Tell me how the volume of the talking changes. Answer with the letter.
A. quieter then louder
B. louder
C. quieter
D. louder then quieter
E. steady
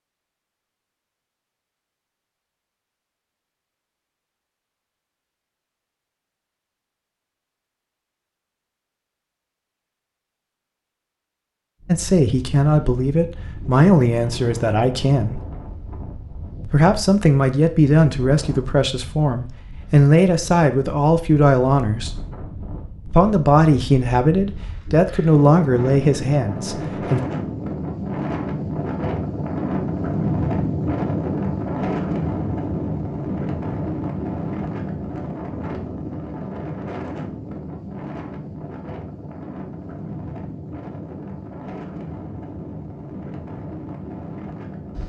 E.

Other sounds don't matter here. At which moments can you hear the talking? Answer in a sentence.
You can hear the talking from 11.8 to 15.4 s, from 16.6 to 22.2 s and from 23.1 to 27.2 s.